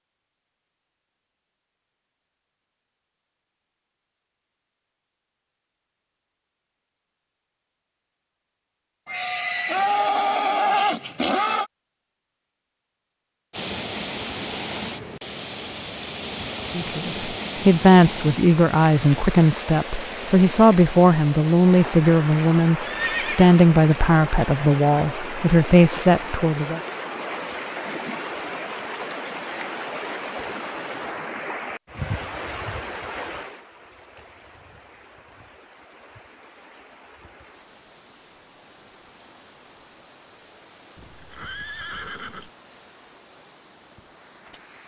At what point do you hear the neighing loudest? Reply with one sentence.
The loudest moment of the neighing is at 11 seconds.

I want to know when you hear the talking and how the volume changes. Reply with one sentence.
The talking can be heard from 16.8 to 26.8 s, at a steady volume.